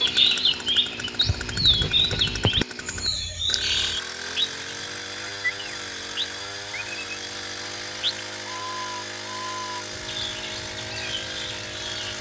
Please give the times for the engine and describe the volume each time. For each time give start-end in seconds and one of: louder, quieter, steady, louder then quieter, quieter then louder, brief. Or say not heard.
0.0-12.1 steady.